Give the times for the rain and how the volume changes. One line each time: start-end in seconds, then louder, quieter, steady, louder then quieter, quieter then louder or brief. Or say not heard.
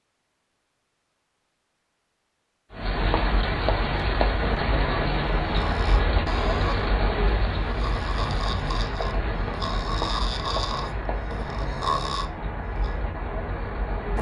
2.7-14.1 quieter.